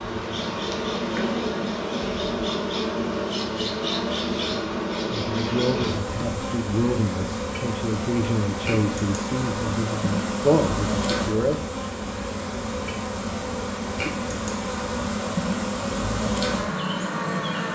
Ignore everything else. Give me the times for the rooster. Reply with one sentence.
The rooster can't be heard in this clip.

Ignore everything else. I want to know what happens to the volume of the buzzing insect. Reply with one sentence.
The volume of the buzzing insect stays about the same.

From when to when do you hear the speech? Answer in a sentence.
You can hear the speech from 5.1 to 11.6 s.